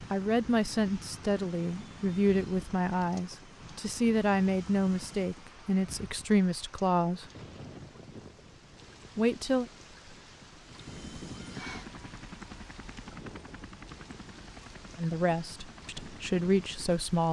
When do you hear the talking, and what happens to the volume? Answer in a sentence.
The talking can be heard from 0.1 to 7.2 s, at a steady volume; briefly from 9.2 to 9.7 s; and briefly from 14.9 to 17.2 s.